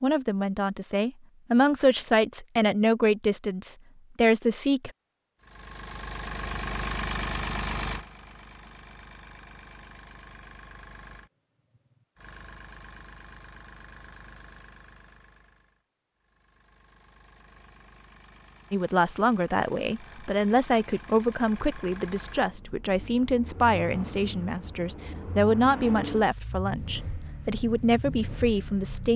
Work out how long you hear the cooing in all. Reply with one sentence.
The cooing can't be heard in this clip.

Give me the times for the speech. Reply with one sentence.
You can hear the speech from 0.0 to 4.9 s and from 18.7 to 29.1 s.